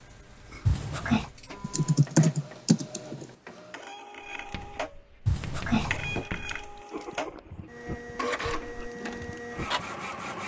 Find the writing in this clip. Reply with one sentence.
The writing can be heard from 4.2 to 9.8 s.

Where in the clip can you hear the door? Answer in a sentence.
The door can be heard from 0.7 to 1.3 s and from 5.2 to 6.2 s.